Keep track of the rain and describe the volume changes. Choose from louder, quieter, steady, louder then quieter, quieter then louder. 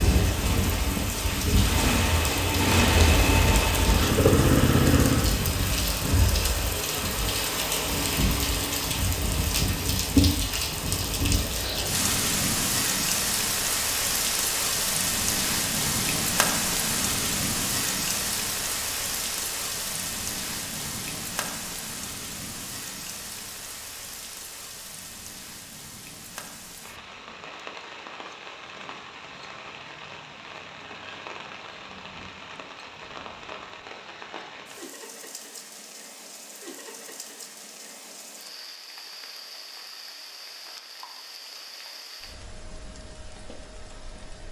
quieter.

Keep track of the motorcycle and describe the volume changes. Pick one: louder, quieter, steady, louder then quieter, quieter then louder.
louder.